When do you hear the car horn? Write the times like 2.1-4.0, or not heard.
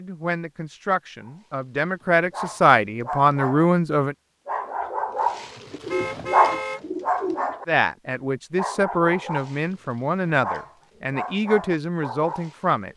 5.8-6.8.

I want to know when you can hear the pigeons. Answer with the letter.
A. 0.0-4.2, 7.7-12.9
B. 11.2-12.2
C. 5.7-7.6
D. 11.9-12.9
C.